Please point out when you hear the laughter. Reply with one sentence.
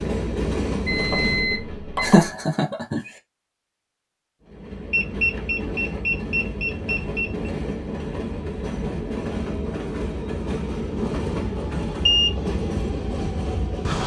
The laughter can be heard from 2.0 to 3.1 s.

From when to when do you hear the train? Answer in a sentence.
The train can be heard from 0.0 to 2.5 s and from 4.4 to 14.0 s.